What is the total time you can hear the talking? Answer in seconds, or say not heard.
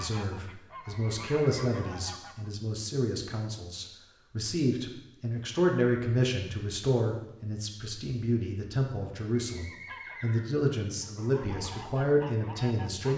13 s.